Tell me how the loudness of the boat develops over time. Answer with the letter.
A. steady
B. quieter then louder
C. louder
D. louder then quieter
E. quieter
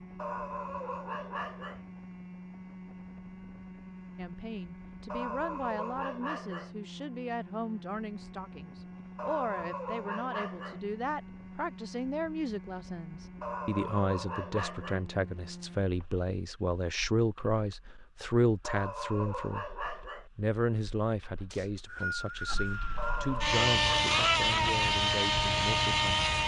B.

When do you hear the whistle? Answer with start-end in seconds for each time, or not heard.
21.5-23.3.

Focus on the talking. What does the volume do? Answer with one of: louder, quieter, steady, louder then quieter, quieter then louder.
louder then quieter.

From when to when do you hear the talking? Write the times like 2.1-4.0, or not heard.
4.2-19.6, 20.4-26.3.